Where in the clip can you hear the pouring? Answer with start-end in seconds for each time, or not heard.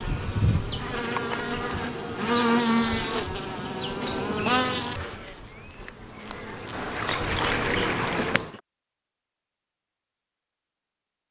6.7-8.3.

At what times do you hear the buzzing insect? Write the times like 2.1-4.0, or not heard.
0.0-8.6.